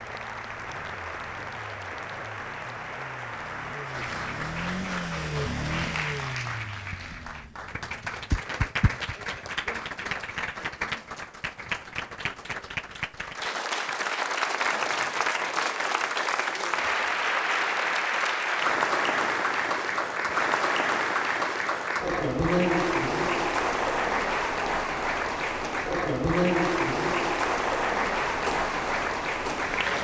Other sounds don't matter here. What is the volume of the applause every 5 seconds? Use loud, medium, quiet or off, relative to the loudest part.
medium, medium, medium, loud, loud, loud.